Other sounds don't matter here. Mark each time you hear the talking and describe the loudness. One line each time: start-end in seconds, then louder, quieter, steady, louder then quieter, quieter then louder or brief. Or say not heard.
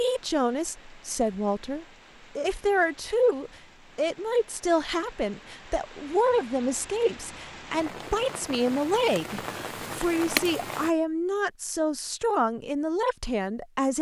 0.0-13.9 steady.